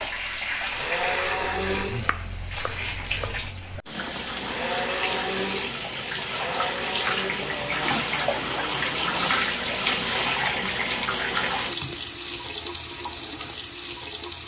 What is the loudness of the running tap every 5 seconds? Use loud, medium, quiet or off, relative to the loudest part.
medium, loud, loud.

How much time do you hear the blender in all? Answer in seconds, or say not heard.
7 s.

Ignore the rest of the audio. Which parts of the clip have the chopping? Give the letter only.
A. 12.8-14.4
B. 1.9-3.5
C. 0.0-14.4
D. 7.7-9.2
B.